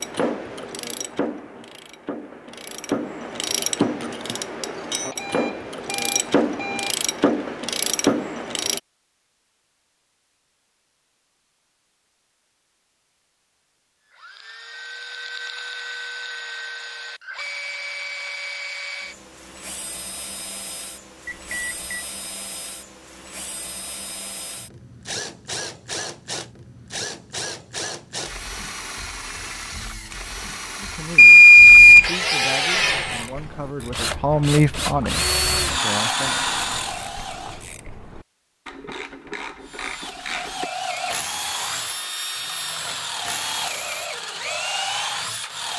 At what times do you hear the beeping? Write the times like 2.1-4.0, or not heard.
5.0-7.0, 21.2-22.1, 31.1-32.1.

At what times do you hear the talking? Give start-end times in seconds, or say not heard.
30.8-36.4.